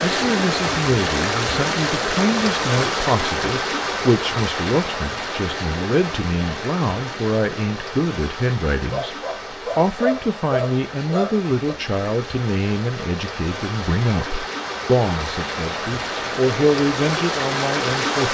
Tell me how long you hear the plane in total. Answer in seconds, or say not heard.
not heard.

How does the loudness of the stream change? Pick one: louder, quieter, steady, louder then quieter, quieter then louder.
quieter then louder.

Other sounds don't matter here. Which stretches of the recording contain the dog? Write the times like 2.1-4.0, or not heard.
8.9-11.8.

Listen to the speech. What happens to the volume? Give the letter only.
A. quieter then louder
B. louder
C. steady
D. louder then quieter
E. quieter
C.